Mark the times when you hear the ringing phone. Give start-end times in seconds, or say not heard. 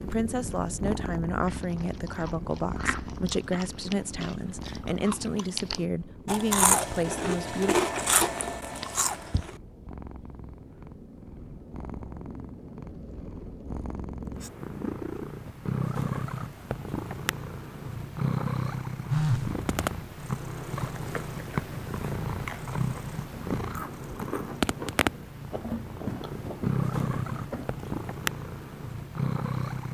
19.1-19.6.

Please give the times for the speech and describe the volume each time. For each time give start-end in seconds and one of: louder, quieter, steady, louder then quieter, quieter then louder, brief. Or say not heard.
0.0-7.8 steady.